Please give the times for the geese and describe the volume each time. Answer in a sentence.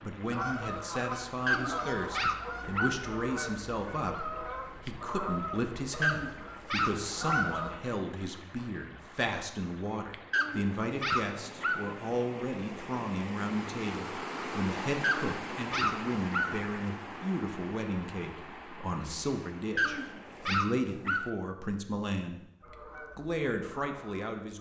You can hear the geese from 0.2 to 7.8 s, at a steady volume; and briefly from 22.6 to 24.5 s.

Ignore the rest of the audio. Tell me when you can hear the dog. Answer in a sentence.
You can hear the dog from 1.4 to 3.0 s, from 6.0 to 7.5 s, from 10.3 to 11.8 s, from 15.0 to 16.6 s and from 19.8 to 21.3 s.